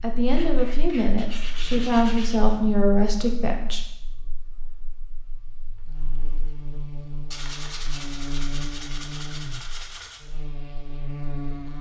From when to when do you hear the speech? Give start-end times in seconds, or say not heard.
0.0-3.8.